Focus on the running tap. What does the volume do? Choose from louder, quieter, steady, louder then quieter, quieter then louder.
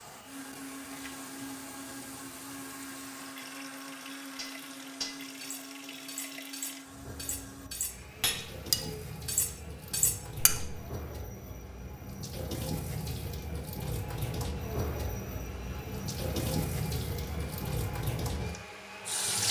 louder.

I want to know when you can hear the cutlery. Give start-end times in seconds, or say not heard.
4.3-10.8.